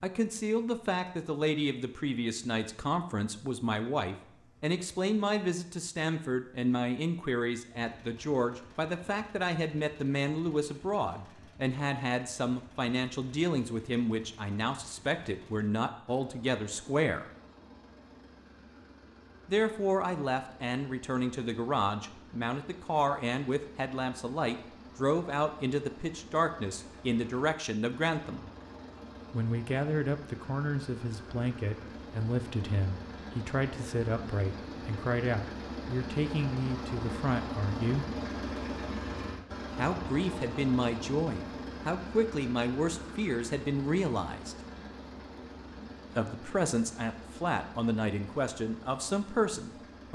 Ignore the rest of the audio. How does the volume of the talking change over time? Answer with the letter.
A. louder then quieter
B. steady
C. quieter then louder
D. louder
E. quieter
B.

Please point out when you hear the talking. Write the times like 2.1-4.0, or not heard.
0.0-17.2, 19.4-28.4, 29.3-38.0, 39.8-44.5, 46.1-50.1.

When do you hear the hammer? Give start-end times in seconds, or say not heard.
not heard.